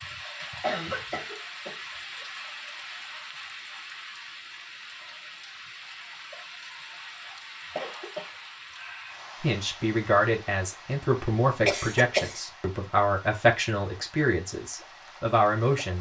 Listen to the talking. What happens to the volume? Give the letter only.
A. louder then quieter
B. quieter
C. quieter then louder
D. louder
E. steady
E.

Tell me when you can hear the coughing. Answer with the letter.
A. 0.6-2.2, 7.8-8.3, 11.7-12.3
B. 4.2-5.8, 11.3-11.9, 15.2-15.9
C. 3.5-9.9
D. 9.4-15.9
A.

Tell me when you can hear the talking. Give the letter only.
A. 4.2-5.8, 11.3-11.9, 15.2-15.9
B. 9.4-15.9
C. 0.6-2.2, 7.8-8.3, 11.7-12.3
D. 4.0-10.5
B.